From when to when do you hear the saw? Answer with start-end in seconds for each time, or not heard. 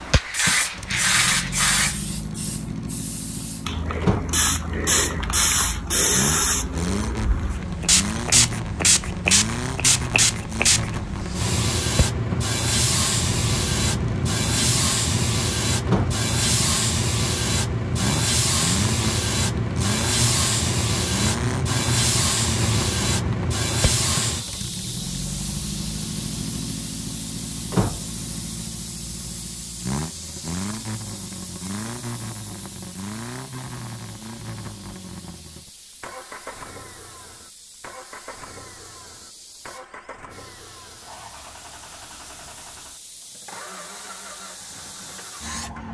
not heard.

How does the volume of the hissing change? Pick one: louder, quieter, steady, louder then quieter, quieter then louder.
quieter.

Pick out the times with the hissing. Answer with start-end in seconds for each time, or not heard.
0.0-45.8.